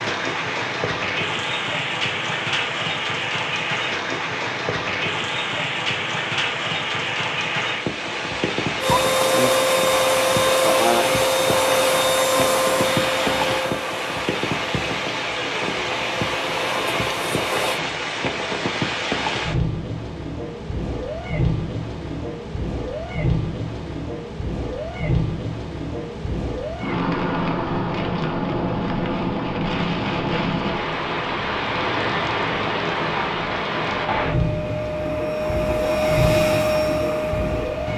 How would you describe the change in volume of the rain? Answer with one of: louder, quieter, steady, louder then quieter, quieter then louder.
steady.